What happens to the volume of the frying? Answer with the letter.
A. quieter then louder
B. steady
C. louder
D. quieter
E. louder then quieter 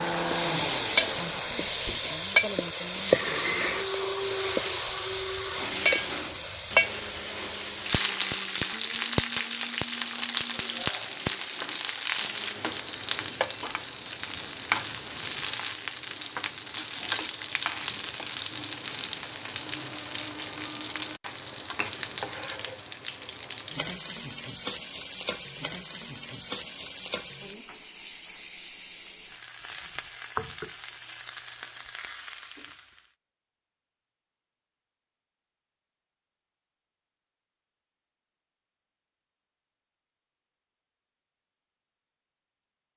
D.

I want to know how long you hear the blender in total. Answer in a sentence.
The blender can be heard for 13 seconds in total.